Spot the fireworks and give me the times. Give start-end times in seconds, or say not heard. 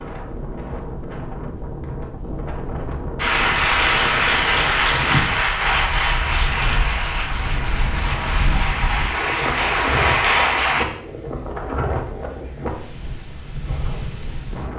not heard.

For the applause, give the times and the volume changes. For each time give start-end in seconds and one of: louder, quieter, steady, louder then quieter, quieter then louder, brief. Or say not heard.
3.1-10.8 quieter then louder.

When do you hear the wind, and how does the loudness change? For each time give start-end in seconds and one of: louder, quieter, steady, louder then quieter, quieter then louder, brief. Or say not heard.
0.0-14.7 steady.